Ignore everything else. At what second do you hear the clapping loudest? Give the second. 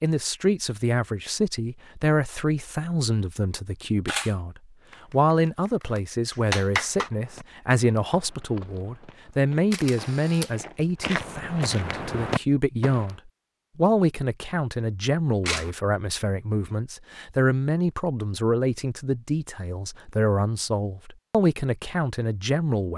7 s.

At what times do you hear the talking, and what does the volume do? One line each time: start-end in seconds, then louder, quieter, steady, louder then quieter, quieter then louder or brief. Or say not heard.
0.0-22.9 steady.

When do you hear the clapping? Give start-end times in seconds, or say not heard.
4.8-7.1.